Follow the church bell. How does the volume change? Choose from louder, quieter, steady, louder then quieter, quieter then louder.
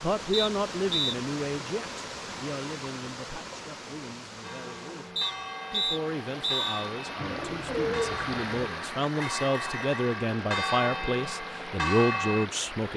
louder.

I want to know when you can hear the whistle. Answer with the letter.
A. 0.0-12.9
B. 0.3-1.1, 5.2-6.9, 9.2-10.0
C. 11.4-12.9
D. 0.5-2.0
B.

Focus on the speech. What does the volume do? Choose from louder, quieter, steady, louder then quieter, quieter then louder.
quieter then louder.